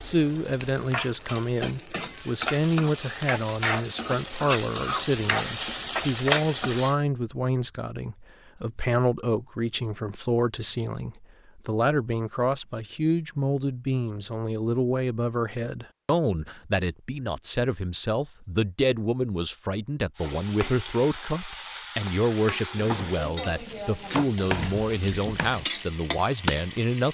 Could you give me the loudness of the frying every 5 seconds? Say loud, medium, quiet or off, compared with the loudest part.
medium, loud, off, off, medium, medium.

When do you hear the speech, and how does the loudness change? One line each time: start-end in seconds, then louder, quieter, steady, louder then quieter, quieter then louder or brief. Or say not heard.
0.0-27.1 steady.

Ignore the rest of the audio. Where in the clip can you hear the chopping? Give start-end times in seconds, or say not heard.
22.8-25.6.